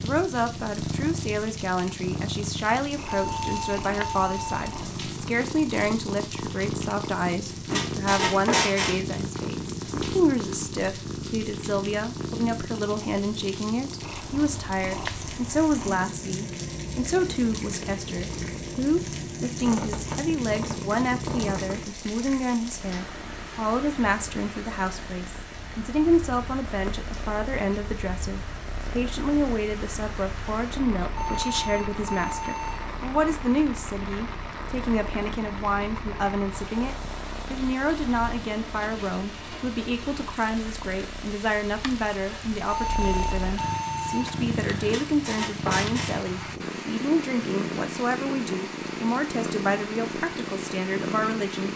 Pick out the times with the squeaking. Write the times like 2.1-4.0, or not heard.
7.7-9.0, 19.6-21.9, 44.9-46.2.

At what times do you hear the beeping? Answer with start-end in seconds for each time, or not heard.
3.1-4.6, 31.1-33.0, 42.6-44.4.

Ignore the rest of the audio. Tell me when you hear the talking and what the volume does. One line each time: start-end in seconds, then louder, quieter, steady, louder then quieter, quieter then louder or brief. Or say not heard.
0.0-51.7 steady.